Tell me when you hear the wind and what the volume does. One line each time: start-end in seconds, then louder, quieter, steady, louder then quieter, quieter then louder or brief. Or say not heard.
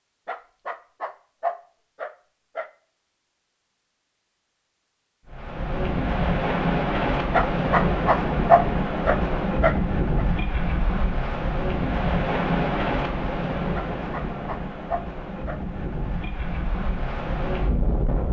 5.2-18.2 quieter.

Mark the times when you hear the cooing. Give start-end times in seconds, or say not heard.
not heard.